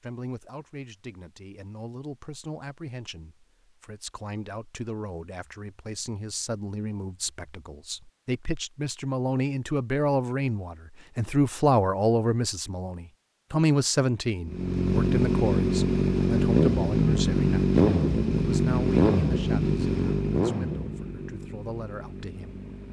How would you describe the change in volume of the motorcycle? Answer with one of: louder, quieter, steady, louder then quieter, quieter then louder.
quieter.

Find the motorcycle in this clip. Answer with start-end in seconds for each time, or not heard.
14.4-22.8.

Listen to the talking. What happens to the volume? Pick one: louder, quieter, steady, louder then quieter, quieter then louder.
louder then quieter.